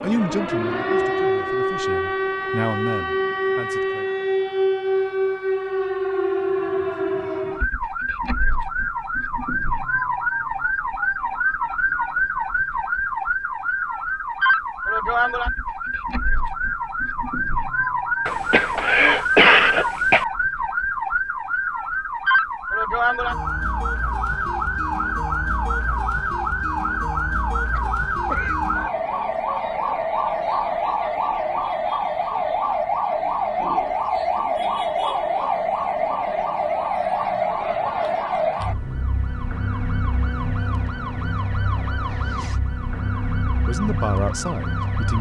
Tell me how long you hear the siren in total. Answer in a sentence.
You can hear the siren for 45 seconds altogether.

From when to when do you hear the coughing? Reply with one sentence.
The coughing can be heard from 18.2 to 20.2 s and from 27.7 to 28.6 s.